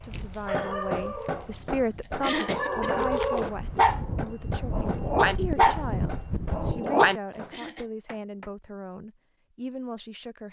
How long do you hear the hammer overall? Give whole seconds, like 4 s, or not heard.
8 s.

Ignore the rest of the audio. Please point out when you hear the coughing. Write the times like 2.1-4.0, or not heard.
2.2-3.1, 7.3-7.8.